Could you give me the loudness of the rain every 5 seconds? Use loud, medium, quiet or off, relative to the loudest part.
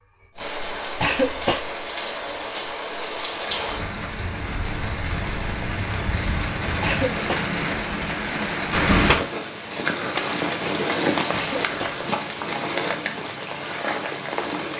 medium, loud, loud.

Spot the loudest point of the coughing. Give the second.
1 s.